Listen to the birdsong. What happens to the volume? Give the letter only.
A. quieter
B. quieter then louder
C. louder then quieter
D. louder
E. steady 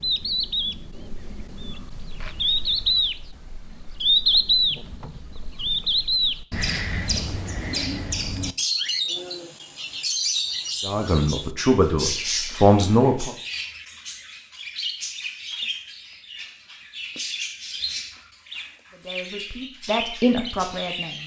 A.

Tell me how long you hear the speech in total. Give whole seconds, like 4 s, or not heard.
5 s.